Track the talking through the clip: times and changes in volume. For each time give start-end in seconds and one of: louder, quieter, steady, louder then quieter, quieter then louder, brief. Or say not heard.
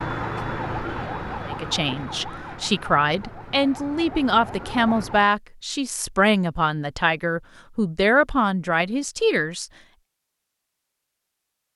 1.5-9.7 steady.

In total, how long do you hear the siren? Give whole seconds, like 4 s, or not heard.
5 s.